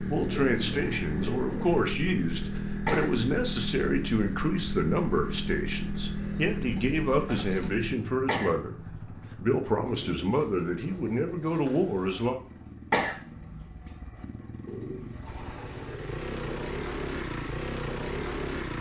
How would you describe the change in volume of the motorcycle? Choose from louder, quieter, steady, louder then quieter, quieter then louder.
quieter then louder.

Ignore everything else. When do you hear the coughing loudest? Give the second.
13 s.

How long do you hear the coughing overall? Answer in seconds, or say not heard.
3 s.